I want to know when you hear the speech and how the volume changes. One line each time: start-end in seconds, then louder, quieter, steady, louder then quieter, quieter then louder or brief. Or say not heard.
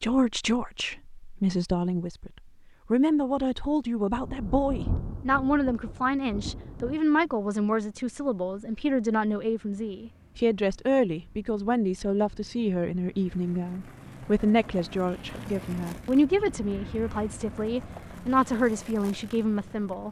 0.0-20.0 steady.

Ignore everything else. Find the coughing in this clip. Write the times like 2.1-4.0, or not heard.
not heard.